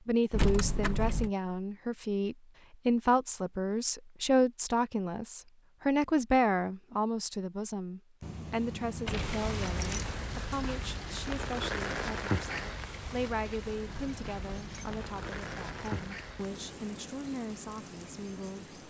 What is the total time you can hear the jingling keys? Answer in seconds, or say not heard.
5 s.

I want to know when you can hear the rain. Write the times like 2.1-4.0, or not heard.
9.1-18.8.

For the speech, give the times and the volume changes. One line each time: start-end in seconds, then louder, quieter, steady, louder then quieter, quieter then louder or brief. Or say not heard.
0.1-18.8 quieter.